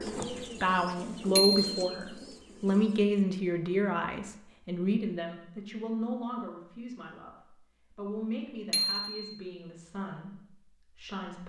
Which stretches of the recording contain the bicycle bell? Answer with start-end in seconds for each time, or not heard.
1.4-1.8, 8.7-9.3.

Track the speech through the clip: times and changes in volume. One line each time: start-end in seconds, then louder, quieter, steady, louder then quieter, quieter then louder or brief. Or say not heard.
0.0-11.4 quieter.